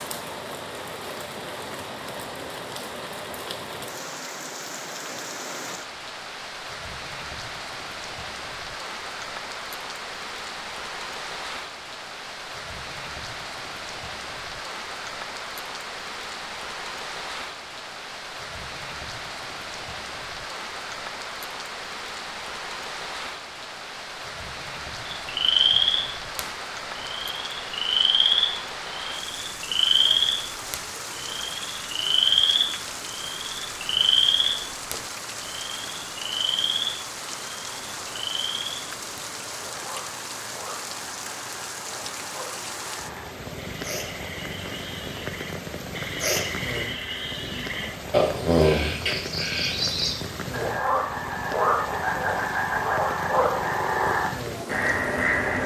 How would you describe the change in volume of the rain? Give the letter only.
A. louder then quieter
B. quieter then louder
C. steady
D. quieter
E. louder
C.